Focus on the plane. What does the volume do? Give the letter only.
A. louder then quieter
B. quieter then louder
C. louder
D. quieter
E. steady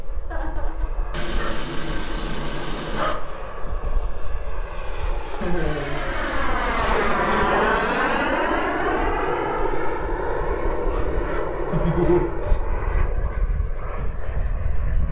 A.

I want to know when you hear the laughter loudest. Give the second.
12 s.